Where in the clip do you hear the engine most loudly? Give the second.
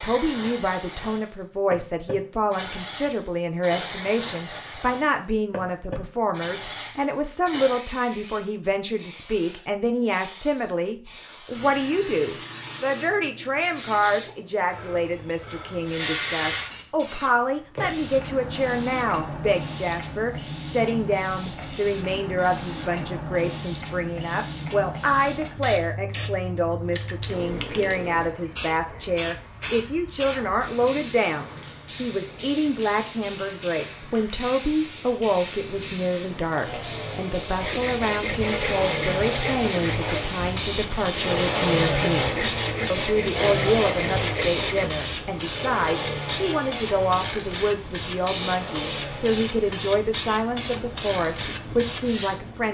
42 s.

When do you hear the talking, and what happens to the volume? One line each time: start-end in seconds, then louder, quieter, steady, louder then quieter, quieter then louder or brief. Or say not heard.
0.0-52.6 steady.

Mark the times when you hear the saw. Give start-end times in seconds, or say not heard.
37.5-44.9.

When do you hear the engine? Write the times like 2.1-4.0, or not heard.
36.6-52.6.